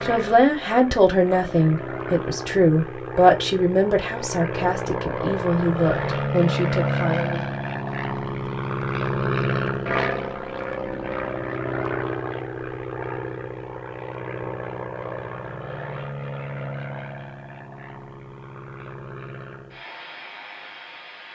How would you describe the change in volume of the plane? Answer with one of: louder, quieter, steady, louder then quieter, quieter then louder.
louder then quieter.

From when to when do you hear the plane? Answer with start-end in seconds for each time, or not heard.
0.0-21.3.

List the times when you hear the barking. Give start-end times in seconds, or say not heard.
not heard.